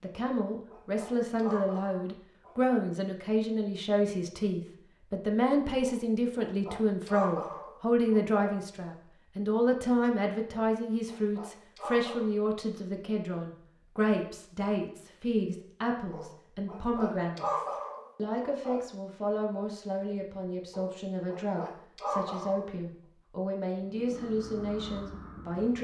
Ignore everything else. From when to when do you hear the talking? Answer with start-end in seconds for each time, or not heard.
0.0-25.7.